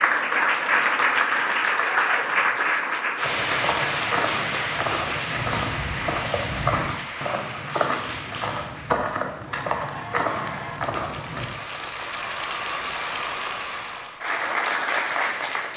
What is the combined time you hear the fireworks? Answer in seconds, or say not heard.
not heard.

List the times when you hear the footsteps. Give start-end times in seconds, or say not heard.
3.2-11.5.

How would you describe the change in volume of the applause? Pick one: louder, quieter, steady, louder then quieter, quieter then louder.
quieter then louder.